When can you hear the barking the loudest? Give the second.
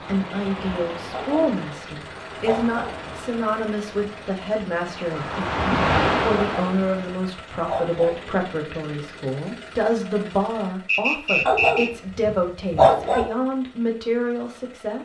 13 s.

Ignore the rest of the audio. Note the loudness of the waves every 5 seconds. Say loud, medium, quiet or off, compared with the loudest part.
quiet, loud, off.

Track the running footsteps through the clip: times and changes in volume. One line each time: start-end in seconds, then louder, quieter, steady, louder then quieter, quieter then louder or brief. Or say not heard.
not heard.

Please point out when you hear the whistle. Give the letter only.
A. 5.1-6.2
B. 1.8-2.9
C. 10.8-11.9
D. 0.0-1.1
C.